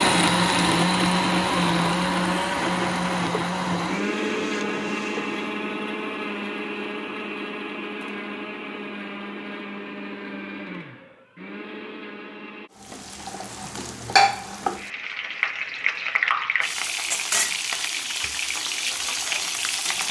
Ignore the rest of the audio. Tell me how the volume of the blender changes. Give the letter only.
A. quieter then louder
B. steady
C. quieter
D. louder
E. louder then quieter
C.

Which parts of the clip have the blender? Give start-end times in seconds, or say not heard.
0.0-12.7.